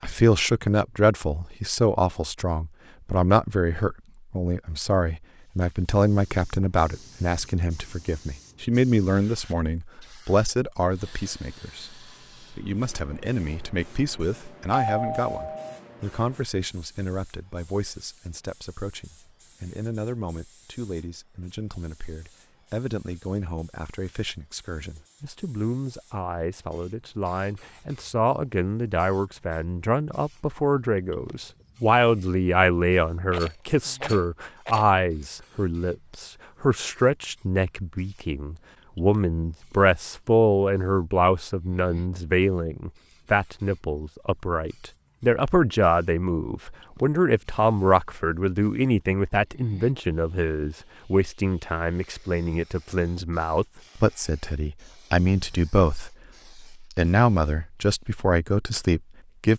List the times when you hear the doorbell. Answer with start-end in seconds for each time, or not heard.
14.7-15.8.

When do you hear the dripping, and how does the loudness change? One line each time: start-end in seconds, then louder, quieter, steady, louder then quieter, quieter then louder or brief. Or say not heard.
not heard.